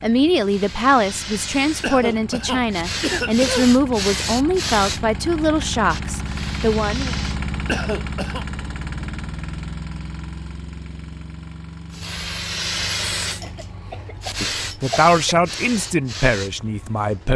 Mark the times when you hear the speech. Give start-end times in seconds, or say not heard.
0.0-7.2, 14.4-17.3.